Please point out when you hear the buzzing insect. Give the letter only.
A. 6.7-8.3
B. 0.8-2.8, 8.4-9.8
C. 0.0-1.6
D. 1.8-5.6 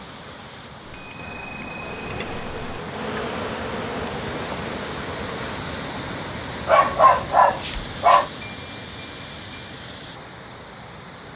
D.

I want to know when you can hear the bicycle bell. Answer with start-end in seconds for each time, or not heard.
0.8-2.8, 8.4-9.8.